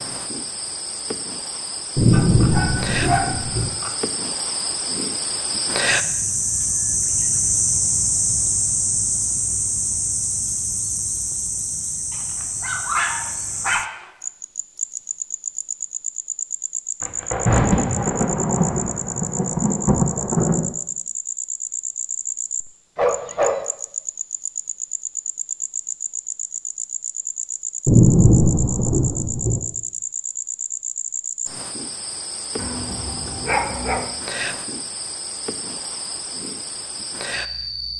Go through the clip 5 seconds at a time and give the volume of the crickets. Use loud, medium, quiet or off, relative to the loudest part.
medium, loud, medium, medium, medium, medium, medium, medium.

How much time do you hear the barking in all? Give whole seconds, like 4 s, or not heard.
6 s.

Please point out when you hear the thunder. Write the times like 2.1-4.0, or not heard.
1.9-3.7, 17.0-20.7, 27.9-29.6.